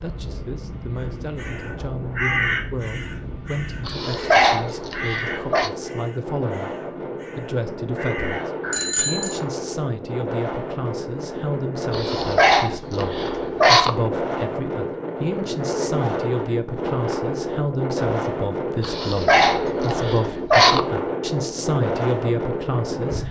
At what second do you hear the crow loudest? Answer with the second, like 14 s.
2 s.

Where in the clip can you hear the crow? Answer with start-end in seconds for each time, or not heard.
1.0-9.0.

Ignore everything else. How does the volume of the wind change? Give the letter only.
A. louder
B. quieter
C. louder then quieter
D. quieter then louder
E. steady
A.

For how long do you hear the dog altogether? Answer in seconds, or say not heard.
6 s.